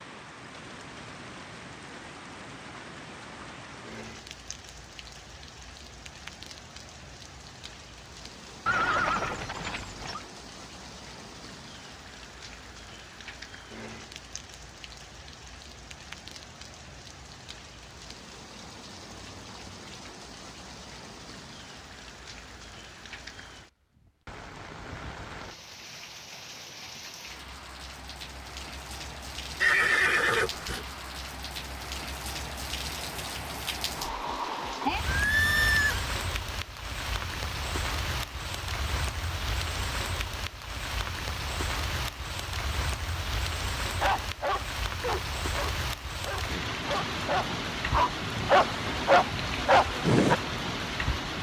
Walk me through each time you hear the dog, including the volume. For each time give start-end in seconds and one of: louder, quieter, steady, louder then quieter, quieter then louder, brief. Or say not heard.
44.0-50.4 quieter then louder.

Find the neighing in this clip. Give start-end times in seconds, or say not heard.
8.7-10.2, 29.6-30.9, 35.0-36.0.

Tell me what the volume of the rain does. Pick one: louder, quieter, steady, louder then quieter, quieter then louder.
louder.